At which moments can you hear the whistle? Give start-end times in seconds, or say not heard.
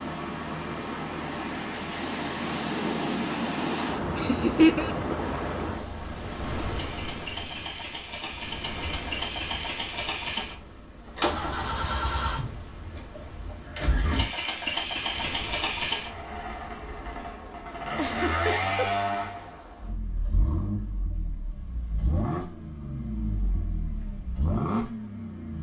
not heard.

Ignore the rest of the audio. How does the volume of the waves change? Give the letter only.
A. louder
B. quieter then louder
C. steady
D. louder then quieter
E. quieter
E.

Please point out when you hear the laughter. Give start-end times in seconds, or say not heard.
4.2-5.0, 10.2-11.1, 17.9-18.9.